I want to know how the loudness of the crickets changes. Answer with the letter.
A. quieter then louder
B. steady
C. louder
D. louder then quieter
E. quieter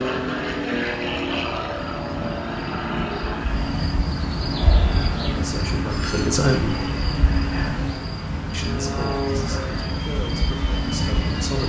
C.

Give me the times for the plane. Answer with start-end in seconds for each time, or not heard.
0.0-11.6.